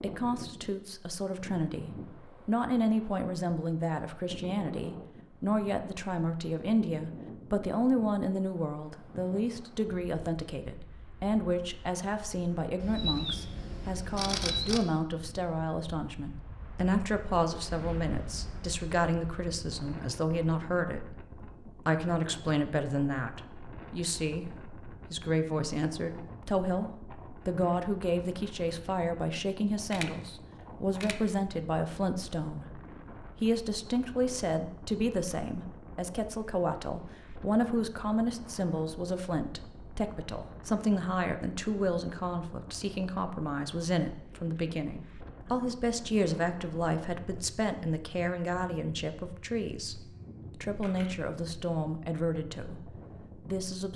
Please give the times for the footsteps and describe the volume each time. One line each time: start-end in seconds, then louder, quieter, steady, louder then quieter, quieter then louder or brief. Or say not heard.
not heard.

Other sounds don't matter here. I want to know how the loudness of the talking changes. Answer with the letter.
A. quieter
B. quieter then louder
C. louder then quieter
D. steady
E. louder
D.